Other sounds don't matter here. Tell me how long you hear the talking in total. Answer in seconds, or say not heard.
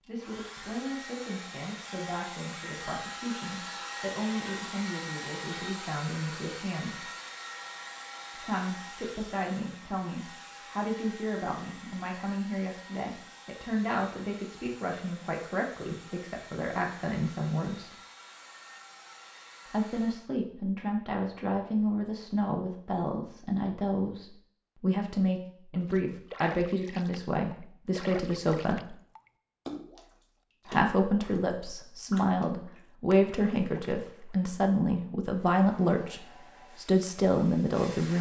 33 s.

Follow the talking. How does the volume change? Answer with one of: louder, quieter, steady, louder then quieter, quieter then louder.
louder.